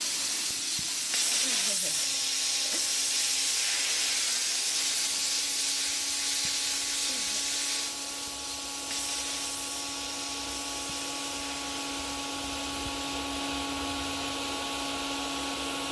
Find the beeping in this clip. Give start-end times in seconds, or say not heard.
not heard.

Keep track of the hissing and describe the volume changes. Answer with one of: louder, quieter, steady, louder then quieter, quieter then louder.
quieter.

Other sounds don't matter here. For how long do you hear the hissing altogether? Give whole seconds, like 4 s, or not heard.
16 s.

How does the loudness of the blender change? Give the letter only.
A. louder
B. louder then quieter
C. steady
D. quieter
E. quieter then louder
A.